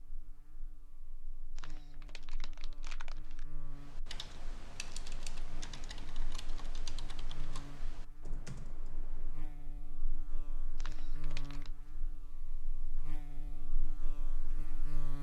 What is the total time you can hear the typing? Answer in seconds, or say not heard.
6 s.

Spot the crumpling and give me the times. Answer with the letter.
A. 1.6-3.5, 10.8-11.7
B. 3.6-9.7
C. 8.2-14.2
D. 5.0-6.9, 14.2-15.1
A.